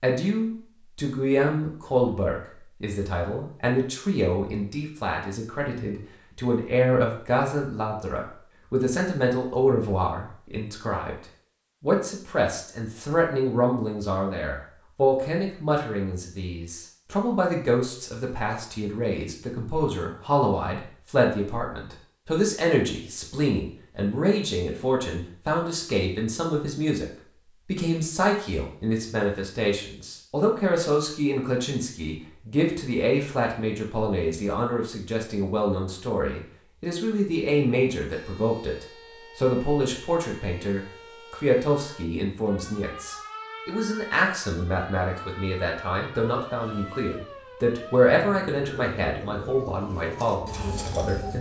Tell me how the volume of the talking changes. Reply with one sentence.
The volume of the talking stays about the same.